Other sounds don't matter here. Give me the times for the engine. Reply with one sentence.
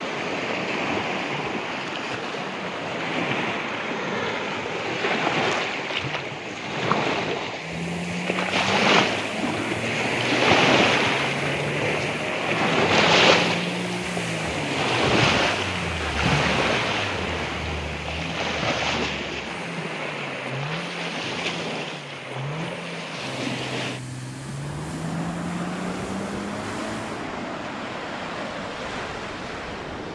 The engine can be heard from 7.5 to 27.3 s.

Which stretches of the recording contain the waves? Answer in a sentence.
The waves can be heard from 0.0 to 30.1 s.